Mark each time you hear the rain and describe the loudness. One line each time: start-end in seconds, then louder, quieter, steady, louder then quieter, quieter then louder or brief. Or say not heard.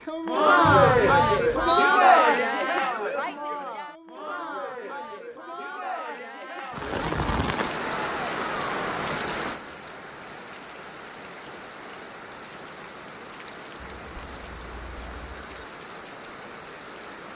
6.7-17.3 quieter.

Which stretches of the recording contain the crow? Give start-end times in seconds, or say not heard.
not heard.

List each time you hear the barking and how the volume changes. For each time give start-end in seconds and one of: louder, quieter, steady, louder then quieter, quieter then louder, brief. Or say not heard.
not heard.